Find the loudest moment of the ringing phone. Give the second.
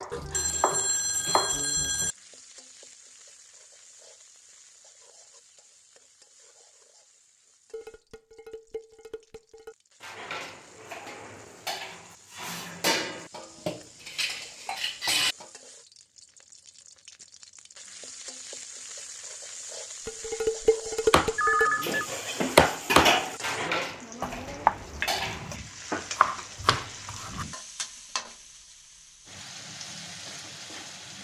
22 s.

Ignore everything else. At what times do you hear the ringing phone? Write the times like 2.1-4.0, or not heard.
0.1-2.1, 21.4-22.1.